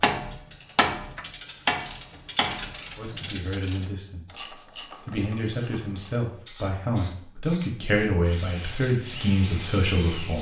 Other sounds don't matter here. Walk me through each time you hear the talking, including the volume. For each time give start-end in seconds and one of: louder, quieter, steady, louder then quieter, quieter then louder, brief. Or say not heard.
3.0-10.3 louder.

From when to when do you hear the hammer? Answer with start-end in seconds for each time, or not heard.
0.0-3.0.